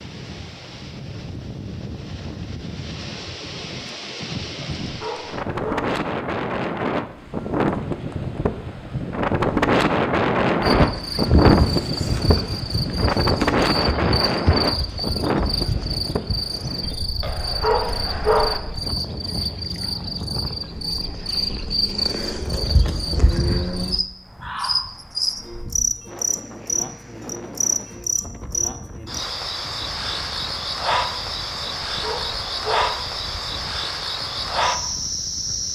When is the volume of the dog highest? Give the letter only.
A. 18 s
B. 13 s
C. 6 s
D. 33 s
A.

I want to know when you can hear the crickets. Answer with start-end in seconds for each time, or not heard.
10.6-35.7.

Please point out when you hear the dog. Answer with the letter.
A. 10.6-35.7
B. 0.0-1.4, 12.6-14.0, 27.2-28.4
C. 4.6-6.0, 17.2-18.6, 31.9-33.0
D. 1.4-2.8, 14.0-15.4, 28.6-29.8
C.